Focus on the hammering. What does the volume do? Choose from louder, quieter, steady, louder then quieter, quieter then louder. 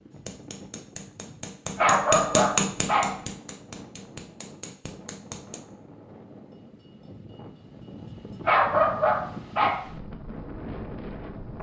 louder then quieter.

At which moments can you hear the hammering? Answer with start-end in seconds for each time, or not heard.
0.1-5.7.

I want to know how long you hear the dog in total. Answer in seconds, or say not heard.
3 s.